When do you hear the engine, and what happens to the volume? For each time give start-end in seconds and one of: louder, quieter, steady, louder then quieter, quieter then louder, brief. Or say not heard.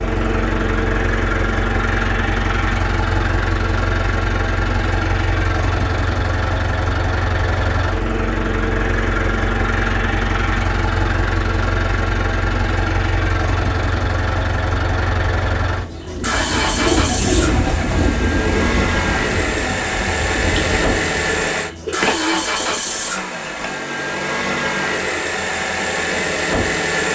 0.0-27.0 steady.